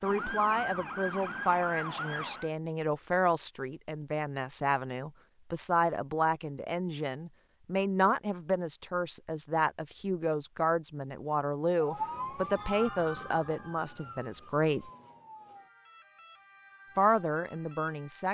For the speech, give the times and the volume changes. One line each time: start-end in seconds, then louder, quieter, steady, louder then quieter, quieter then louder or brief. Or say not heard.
0.0-14.9 steady
16.9-18.3 brief.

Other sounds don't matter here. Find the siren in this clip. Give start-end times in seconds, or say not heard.
0.0-2.5, 11.8-18.3.